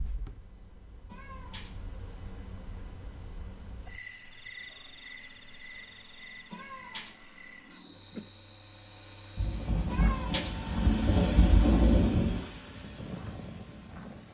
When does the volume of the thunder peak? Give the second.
12 s.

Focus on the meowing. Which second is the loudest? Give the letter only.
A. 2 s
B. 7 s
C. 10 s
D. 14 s
C.